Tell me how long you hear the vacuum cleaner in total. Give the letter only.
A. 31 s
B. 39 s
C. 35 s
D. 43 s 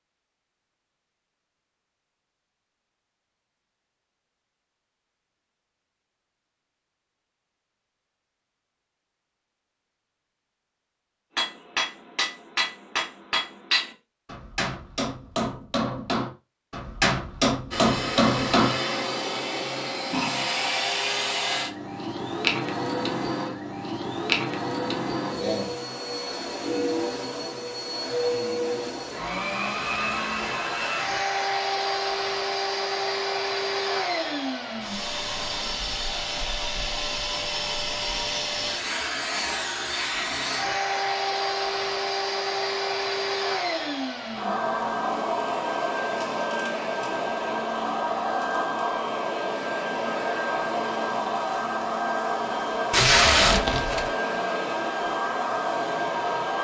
B.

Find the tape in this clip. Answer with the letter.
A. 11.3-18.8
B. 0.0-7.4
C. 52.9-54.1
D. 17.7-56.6
C.